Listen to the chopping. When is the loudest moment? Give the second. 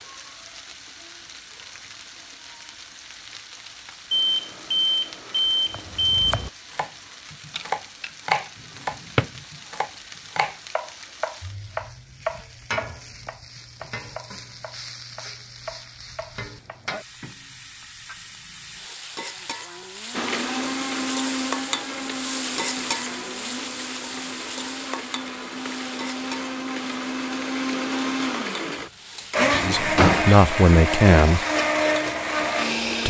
8 s.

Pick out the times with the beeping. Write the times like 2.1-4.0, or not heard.
4.1-6.5.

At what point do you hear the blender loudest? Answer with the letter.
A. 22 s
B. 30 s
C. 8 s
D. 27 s
B.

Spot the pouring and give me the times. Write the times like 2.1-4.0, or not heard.
not heard.